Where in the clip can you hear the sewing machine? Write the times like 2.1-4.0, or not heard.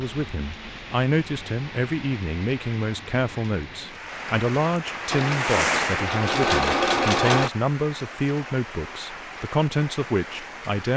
5.1-7.5.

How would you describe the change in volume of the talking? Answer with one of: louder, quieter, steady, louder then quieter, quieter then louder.
steady.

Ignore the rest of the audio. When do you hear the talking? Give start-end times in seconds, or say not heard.
0.0-10.9.